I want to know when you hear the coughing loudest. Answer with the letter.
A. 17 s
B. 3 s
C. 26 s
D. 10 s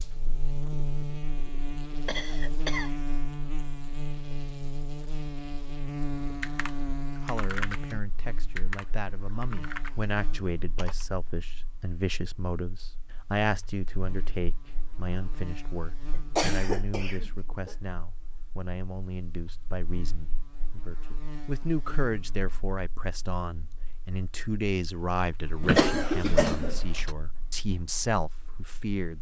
C.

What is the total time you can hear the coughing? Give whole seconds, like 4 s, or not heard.
4 s.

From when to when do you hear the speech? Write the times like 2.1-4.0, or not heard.
7.2-29.1.